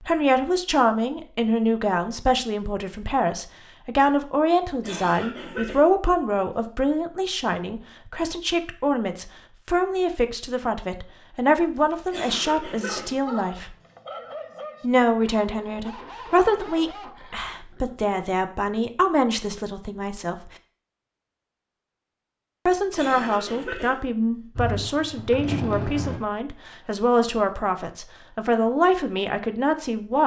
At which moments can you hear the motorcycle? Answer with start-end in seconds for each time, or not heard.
24.6-26.2.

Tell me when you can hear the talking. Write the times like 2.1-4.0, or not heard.
0.1-13.8, 14.8-20.5, 22.6-30.2.